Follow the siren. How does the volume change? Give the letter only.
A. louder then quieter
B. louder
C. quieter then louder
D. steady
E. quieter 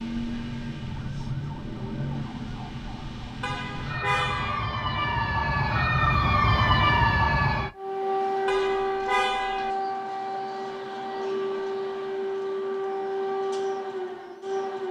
A.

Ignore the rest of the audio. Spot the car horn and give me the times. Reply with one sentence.
The car horn can be heard from 3.4 to 4.7 s and from 8.4 to 9.7 s.